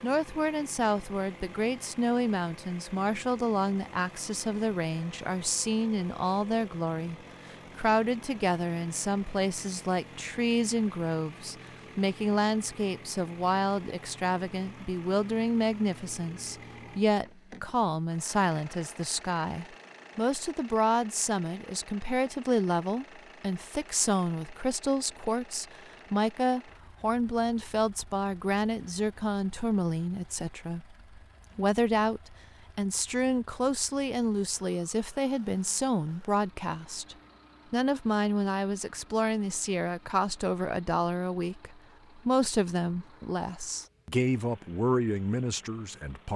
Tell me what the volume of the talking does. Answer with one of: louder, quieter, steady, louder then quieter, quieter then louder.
steady.